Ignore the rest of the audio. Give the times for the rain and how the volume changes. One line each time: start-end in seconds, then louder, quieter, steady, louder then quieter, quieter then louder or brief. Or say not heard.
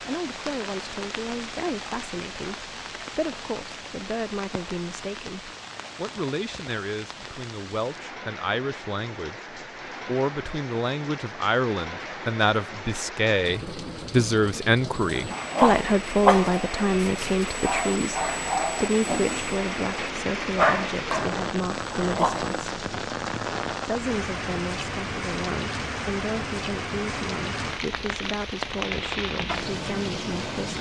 0.0-30.7 louder.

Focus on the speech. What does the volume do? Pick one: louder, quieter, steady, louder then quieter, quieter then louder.
louder then quieter.